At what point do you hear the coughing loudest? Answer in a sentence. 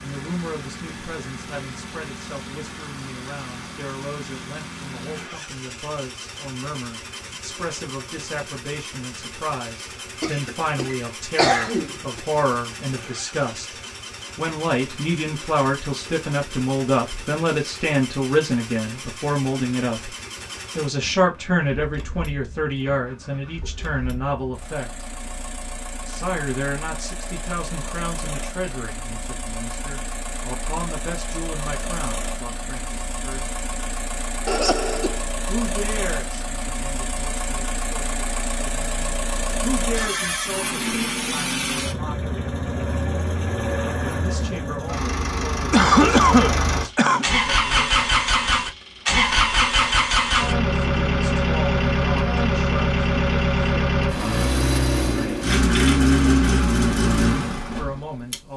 The volume of the coughing peaks at 46 seconds.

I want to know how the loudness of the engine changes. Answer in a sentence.
The volume of the engine goes up.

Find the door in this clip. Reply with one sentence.
The door can't be heard in this clip.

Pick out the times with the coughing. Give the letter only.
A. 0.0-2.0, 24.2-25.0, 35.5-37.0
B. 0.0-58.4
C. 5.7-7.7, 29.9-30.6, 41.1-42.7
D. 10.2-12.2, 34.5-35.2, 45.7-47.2
D.